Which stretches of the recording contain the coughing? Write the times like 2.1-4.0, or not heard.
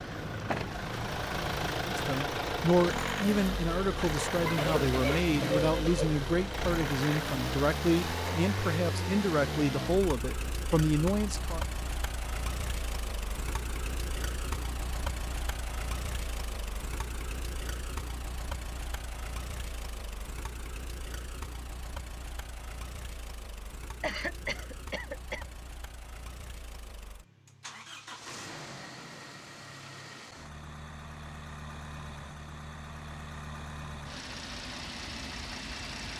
4.5-6.2, 24.0-25.4.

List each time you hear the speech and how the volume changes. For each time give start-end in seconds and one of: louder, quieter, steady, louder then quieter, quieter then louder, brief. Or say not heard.
1.9-11.6 steady.